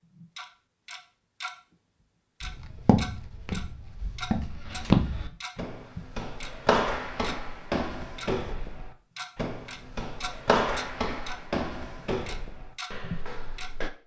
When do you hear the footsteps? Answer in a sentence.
You can hear the footsteps from 2.4 to 13.9 s.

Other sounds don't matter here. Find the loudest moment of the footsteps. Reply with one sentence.
The volume of the footsteps peaks at 5 seconds.